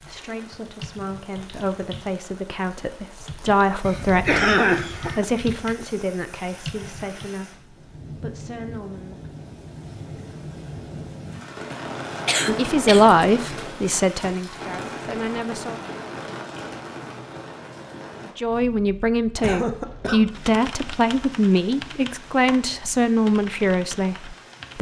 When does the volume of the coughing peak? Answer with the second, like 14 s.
5 s.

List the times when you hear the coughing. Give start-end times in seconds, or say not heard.
3.8-5.2, 12.2-13.2, 19.4-20.2.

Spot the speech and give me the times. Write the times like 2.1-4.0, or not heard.
0.0-9.3, 12.6-15.8, 18.4-24.7.